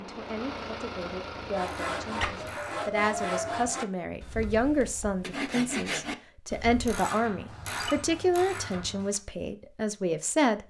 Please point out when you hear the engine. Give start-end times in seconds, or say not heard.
0.0-2.7.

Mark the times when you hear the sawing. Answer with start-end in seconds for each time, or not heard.
1.5-7.0.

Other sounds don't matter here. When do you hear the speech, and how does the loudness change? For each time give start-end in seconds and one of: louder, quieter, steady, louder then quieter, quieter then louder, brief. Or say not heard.
0.0-10.6 louder.